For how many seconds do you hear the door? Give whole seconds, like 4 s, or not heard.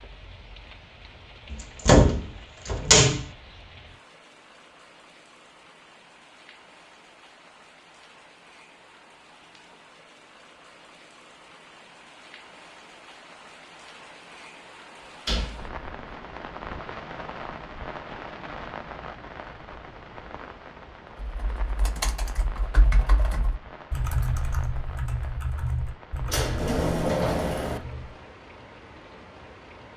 4 s.